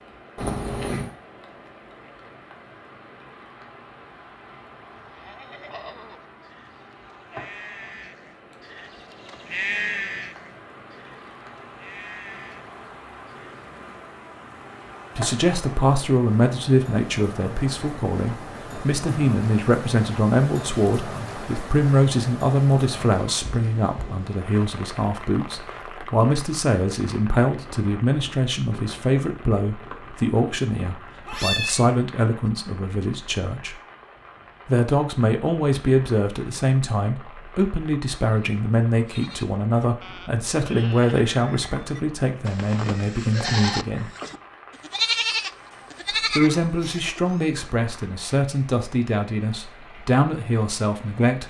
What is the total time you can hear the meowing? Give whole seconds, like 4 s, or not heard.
3 s.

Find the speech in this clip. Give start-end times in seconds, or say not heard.
15.2-33.8, 34.6-44.1, 46.4-51.4.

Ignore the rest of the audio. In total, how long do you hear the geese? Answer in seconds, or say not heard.
not heard.